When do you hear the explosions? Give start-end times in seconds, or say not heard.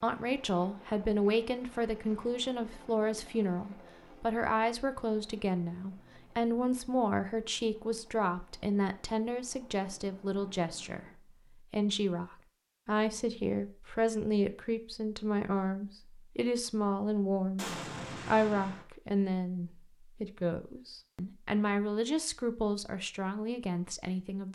17.6-18.9.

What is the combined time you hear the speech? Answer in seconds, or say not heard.
24 s.